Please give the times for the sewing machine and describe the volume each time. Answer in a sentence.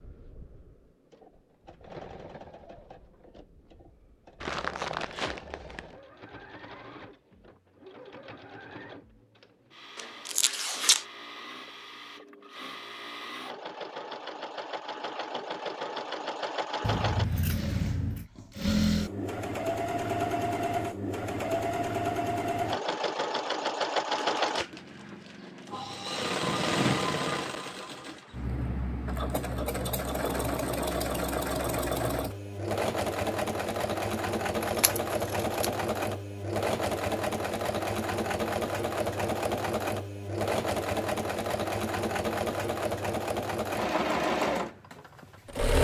The sewing machine can be heard from 0.0 to 45.8 s, getting louder.